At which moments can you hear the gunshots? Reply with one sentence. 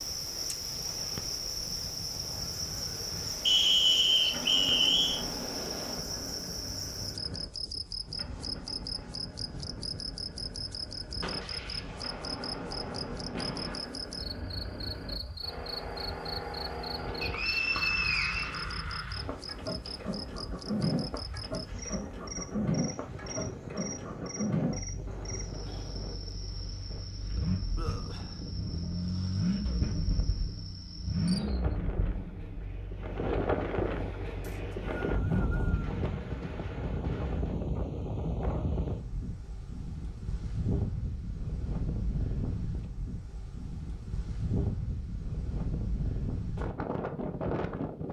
The gunshots can be heard from 11.2 to 13.9 s, from 17.1 to 20.2 s and from 35.8 to 37.5 s.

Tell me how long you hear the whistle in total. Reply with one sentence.
You can hear the whistle for 5 seconds altogether.